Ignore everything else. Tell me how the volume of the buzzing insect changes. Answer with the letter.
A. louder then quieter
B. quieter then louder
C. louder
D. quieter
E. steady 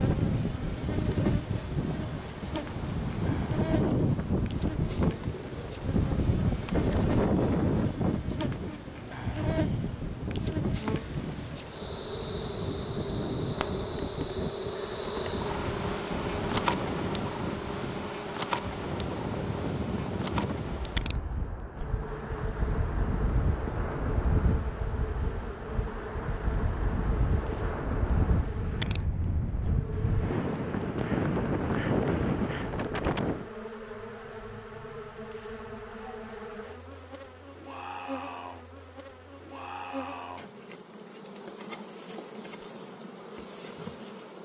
A.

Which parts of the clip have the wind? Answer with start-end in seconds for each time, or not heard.
0.0-33.5.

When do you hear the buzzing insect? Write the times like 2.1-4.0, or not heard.
0.0-44.4.